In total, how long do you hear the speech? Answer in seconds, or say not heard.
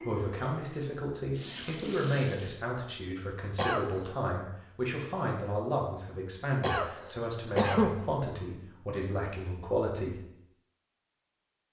10 s.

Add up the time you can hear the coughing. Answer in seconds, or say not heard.
2 s.